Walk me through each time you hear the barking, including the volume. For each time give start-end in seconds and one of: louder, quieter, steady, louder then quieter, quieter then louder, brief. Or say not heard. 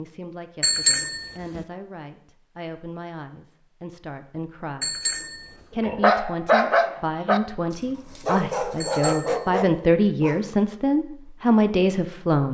5.8-10.5 quieter.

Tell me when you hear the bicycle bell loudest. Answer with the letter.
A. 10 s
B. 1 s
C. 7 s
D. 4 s
B.